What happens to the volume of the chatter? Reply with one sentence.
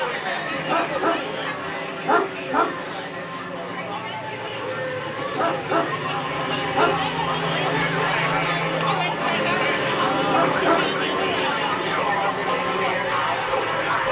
The loudness of the chatter goes up.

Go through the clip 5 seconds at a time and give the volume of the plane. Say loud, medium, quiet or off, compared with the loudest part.
medium, loud, loud.